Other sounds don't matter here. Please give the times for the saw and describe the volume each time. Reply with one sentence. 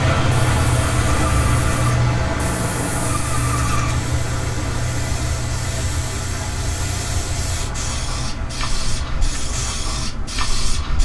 The saw can't be heard in this clip.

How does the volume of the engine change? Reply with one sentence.
The volume of the engine goes down.